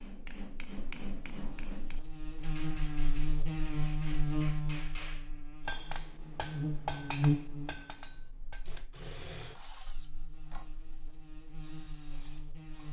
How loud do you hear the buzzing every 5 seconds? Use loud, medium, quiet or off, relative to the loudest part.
loud, loud, quiet.